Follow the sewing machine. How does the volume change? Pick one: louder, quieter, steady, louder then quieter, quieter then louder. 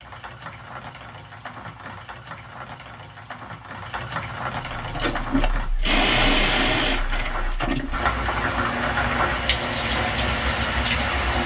quieter.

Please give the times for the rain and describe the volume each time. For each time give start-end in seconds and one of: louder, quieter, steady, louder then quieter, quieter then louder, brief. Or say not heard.
0.0-11.4 louder.